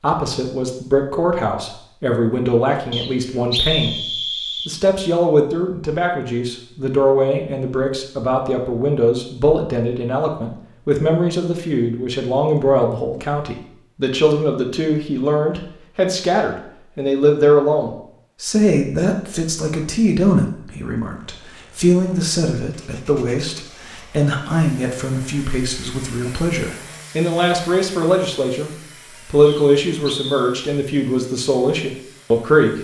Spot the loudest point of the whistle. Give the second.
4 s.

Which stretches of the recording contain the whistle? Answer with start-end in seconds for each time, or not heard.
2.9-4.7, 29.4-30.5.